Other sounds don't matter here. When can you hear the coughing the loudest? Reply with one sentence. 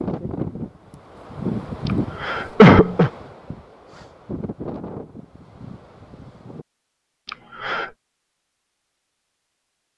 The volume of the coughing peaks at 3 seconds.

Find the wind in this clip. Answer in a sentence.
The wind can be heard from 0.0 to 6.7 s.